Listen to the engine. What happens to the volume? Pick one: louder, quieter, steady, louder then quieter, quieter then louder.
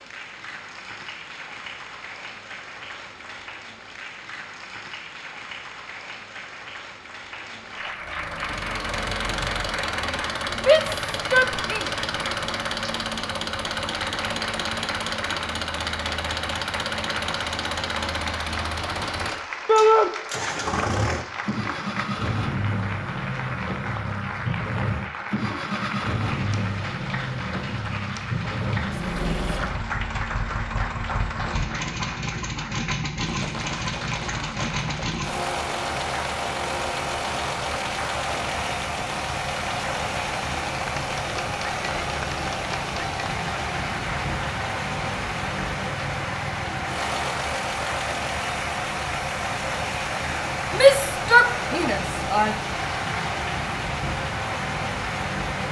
steady.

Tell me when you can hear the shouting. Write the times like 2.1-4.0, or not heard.
10.7-11.9, 19.6-20.1, 50.7-52.5.